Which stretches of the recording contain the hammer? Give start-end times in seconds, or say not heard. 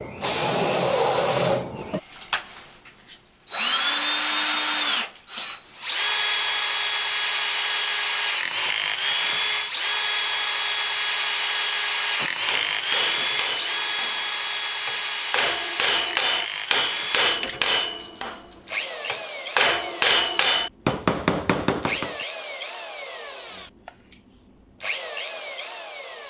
12.2-22.1.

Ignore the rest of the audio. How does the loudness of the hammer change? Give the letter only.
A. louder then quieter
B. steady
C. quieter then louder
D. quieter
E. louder
E.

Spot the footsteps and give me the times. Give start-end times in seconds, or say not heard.
not heard.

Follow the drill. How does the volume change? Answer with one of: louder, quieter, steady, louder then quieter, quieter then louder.
quieter.